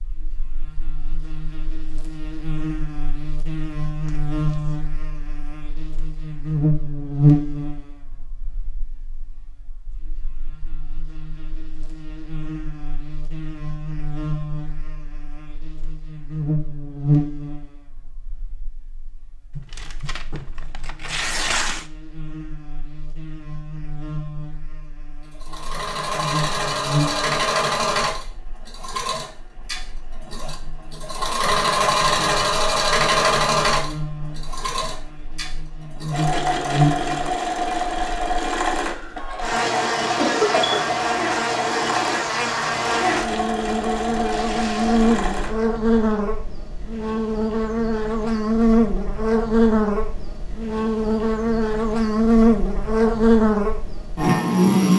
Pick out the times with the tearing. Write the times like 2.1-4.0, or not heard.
4.0-4.8, 19.6-21.9, 44.3-45.0.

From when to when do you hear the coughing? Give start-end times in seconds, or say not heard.
40.1-41.0.